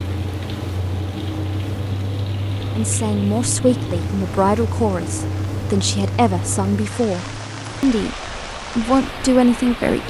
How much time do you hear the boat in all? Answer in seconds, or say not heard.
10 s.